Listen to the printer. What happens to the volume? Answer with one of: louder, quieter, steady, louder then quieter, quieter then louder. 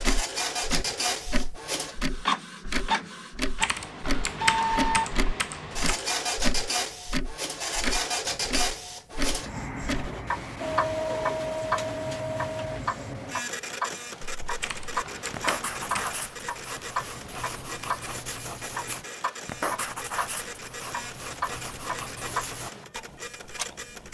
quieter.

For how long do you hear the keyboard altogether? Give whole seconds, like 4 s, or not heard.
4 s.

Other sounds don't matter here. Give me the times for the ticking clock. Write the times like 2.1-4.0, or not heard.
0.0-24.0.